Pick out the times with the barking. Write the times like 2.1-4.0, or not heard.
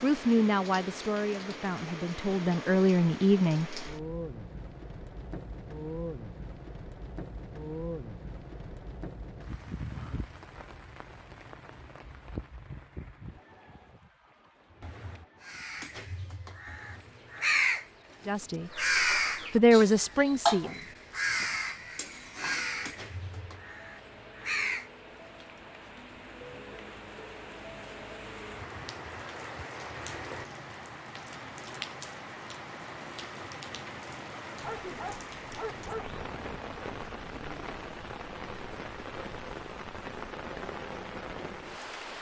34.6-36.2.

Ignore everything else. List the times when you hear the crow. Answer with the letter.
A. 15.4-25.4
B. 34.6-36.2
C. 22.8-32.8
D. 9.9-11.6
A.